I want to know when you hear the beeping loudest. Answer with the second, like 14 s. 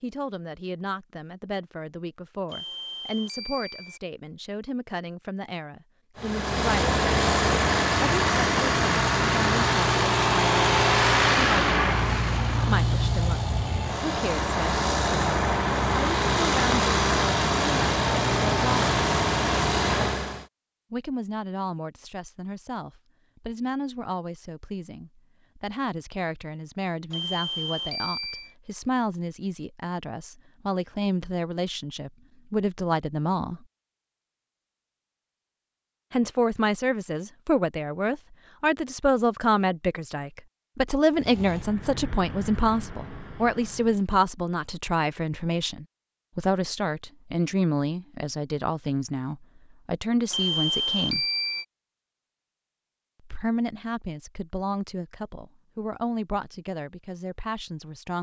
51 s.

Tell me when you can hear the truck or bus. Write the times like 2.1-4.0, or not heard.
6.2-20.4, 41.1-44.0.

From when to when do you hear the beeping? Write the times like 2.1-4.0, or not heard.
2.5-4.0, 27.1-28.6, 50.3-51.6.